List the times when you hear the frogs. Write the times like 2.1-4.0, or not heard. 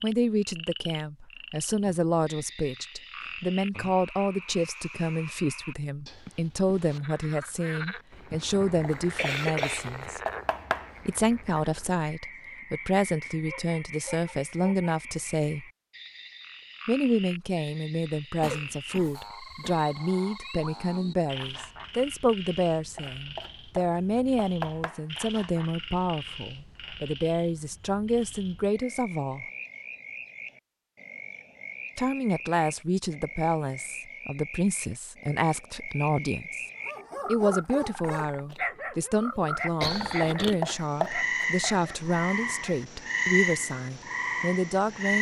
0.0-45.1.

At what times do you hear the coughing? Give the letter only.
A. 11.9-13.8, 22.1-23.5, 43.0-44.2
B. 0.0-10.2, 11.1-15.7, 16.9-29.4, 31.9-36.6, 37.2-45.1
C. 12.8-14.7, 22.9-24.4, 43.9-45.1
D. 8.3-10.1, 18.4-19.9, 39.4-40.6
D.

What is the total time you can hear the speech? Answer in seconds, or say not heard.
40 s.